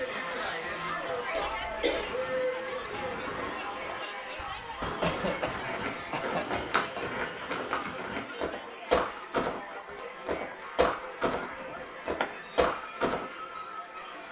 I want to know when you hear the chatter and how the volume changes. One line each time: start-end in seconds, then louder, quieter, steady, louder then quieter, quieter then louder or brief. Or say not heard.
0.0-14.2 quieter.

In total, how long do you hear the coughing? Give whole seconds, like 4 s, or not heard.
3 s.